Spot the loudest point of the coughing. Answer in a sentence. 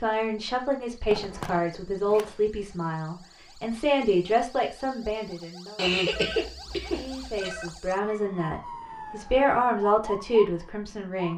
The loudest moment of the coughing is at 6 seconds.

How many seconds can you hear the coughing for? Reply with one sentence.
The coughing can be heard for 2 seconds in total.